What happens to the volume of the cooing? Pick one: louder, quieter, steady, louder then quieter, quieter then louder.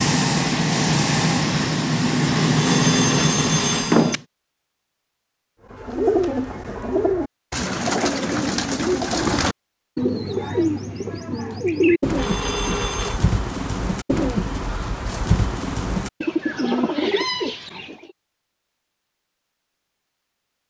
steady.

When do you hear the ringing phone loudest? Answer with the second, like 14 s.
4 s.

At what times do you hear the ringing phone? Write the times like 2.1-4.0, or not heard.
2.5-4.2, 12.2-13.2.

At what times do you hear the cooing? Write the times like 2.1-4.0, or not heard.
5.7-18.1.